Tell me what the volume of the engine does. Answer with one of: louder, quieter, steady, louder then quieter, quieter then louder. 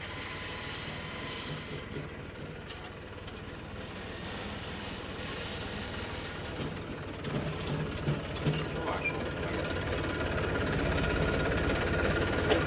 louder.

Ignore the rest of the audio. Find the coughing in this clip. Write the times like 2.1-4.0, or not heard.
8.6-9.7.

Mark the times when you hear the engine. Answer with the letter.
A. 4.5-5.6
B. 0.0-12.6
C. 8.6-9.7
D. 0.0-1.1
B.